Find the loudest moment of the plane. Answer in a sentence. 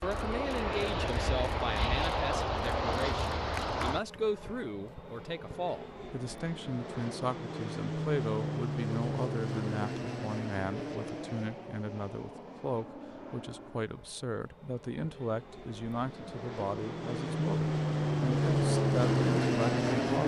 The loudest moment of the plane is at 19 seconds.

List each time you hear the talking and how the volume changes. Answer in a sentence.
The talking can be heard from 0.0 to 20.2 s, at a steady volume.